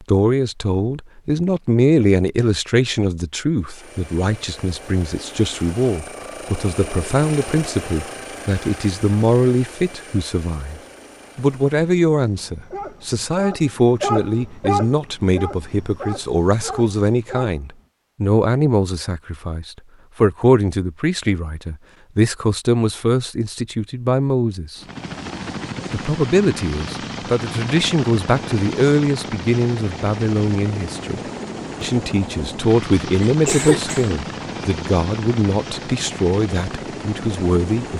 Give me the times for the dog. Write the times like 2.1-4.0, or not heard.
12.7-17.6.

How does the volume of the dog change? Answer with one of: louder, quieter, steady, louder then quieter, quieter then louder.
louder then quieter.